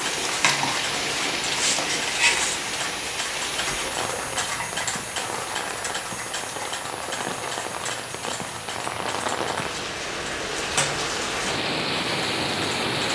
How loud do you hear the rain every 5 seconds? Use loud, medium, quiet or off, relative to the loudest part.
loud, medium, loud.